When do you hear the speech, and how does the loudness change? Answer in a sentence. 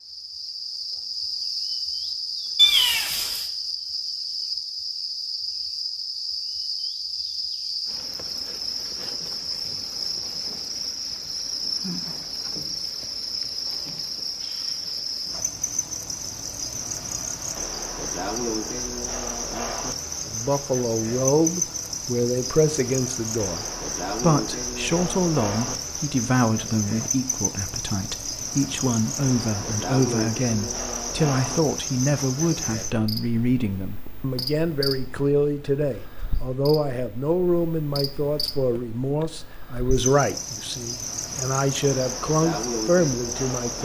You can hear the speech from 20.2 to 43.8 s, at a steady volume.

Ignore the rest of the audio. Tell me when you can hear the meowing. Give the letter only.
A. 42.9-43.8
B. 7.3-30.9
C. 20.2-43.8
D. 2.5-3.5
D.